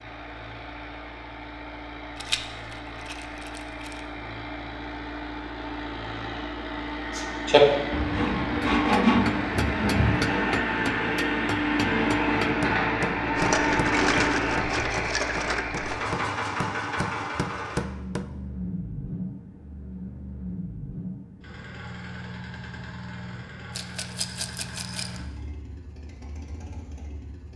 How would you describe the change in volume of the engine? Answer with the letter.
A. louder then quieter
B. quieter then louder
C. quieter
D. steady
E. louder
A.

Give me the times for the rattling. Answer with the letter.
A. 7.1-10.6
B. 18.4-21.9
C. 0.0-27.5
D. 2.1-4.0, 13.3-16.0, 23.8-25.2
D.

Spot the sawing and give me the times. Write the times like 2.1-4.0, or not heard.
7.1-10.6.